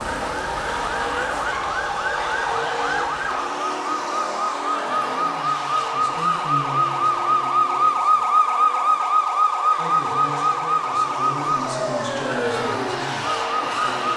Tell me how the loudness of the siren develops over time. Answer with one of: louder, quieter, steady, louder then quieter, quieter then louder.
louder then quieter.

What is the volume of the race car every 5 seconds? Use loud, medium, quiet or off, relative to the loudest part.
loud, medium, loud.